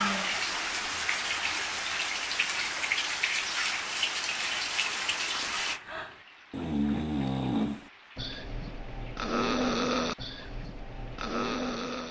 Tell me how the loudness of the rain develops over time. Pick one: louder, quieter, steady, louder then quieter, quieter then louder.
quieter.